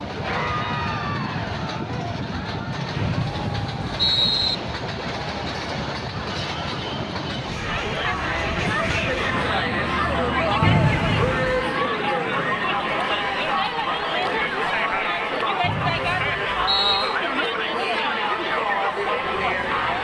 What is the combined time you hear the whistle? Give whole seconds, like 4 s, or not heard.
4 s.